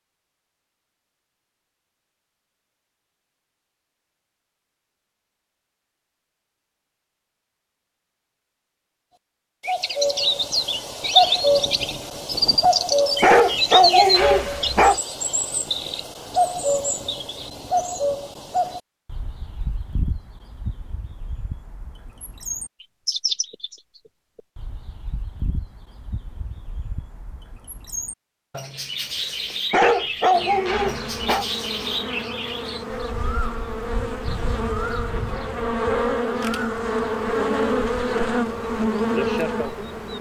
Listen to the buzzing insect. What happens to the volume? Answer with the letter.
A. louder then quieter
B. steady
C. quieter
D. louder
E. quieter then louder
D.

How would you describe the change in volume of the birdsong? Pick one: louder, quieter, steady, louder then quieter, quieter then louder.
quieter.